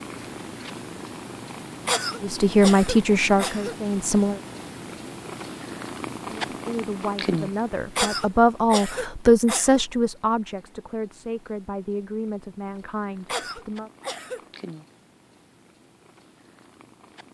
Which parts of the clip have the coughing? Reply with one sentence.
The coughing can be heard from 1.9 to 3.8 s, from 8.0 to 9.8 s and from 13.2 to 14.4 s.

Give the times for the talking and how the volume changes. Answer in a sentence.
The talking can be heard briefly from 2.2 to 4.4 s; and from 6.5 to 13.9 s, getting louder then quieter.